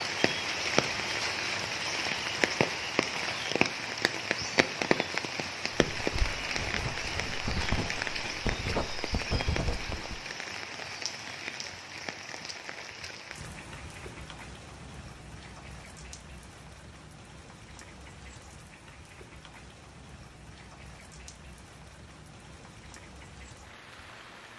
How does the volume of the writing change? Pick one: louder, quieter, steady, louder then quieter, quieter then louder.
louder.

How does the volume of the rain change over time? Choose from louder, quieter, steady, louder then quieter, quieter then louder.
quieter.